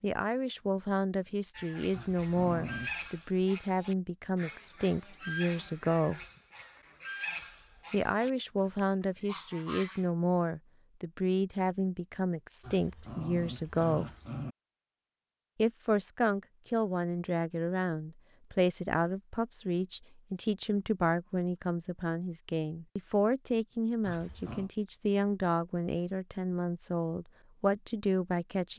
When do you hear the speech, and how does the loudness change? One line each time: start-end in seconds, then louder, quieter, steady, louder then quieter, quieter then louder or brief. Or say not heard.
0.0-6.2 steady
7.9-14.1 steady
15.6-28.7 steady.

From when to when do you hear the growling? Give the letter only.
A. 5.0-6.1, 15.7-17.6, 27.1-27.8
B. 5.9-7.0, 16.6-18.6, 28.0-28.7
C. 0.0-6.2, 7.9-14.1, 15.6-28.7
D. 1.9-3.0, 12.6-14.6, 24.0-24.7
D.